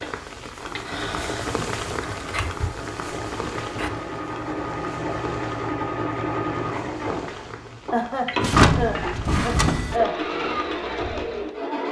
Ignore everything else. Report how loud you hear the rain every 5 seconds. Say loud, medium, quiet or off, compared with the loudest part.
loud, medium, off.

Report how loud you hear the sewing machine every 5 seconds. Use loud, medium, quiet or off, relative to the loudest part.
medium, loud, loud.